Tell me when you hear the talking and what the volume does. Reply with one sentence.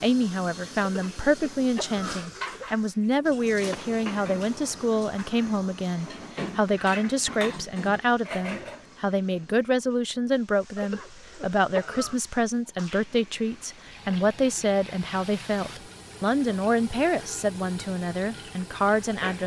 You can hear the talking from 0.0 to 19.4 s, at a steady volume.